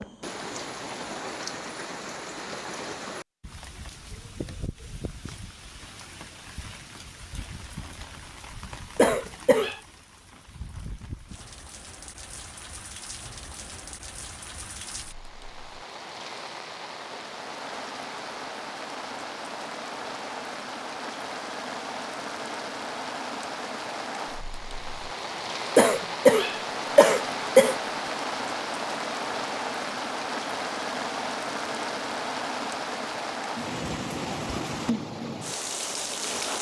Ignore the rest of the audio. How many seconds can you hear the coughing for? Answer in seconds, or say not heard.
3 s.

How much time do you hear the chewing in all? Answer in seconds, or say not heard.
not heard.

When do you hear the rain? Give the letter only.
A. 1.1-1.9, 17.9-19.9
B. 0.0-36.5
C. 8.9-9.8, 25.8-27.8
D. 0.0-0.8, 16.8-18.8
B.